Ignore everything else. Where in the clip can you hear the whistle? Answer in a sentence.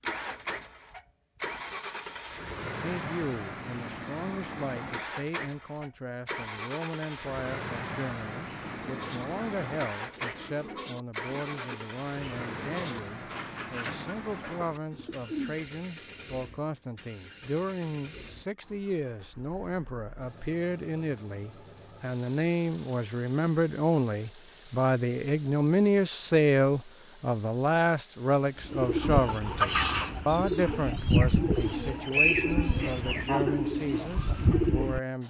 You can hear the whistle from 31.7 to 32.9 s.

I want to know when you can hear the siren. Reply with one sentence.
The siren can't be heard in this clip.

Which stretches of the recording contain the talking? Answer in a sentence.
The talking can be heard from 2.8 to 35.2 s.